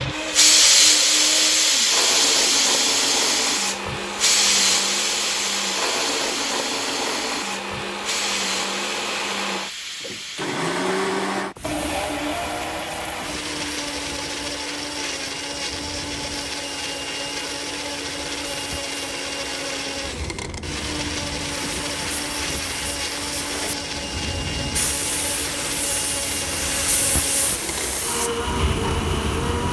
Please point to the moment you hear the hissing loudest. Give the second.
1 s.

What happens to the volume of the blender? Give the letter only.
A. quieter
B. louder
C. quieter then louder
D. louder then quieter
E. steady
E.